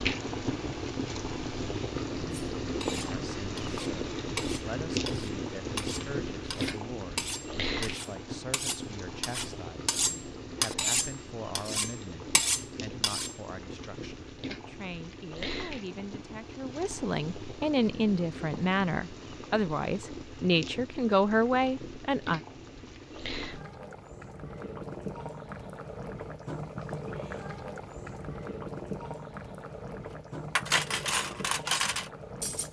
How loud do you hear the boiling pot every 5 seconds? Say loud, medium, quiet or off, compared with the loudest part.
loud, loud, medium, medium, medium, medium, medium.